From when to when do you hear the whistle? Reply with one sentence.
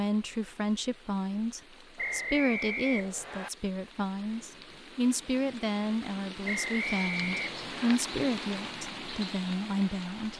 You can hear the whistle from 1.9 to 3.5 s and from 6.5 to 8.0 s.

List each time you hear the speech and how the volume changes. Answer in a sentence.
You can hear the speech from 0.0 to 10.3 s, at a steady volume.